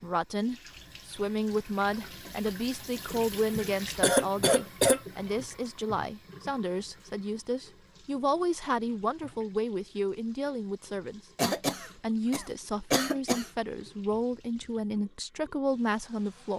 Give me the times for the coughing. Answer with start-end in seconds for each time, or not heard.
3.5-5.0, 11.3-13.5.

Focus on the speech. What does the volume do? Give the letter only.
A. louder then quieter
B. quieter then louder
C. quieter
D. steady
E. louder
D.